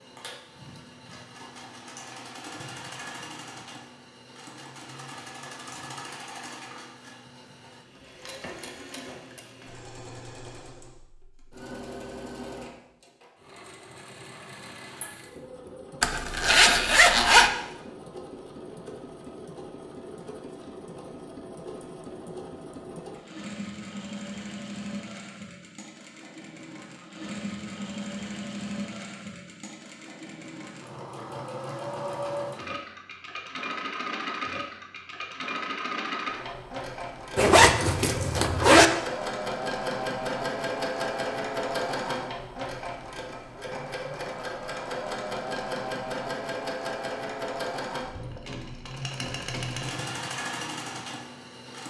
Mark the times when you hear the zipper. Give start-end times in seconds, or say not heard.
16.0-17.5, 37.4-38.9.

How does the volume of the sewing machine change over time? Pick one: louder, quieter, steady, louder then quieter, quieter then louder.
louder.